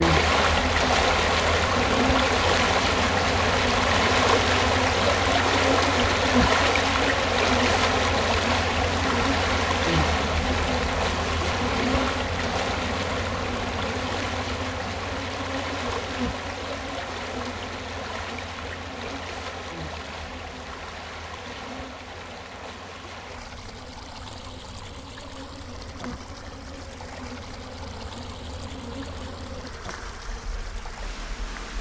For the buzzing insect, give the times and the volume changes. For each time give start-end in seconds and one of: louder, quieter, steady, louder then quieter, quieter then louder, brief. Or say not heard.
0.0-31.7 quieter.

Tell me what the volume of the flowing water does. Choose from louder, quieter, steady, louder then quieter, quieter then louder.
quieter.